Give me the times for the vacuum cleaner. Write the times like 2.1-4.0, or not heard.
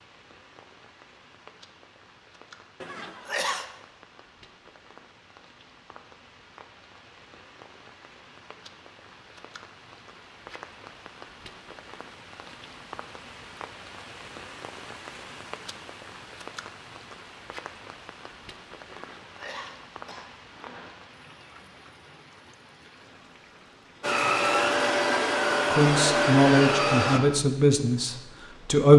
24.0-27.2.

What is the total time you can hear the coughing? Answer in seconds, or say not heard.
3 s.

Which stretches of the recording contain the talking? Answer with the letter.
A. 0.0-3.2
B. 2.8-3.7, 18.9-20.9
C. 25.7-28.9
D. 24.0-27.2
C.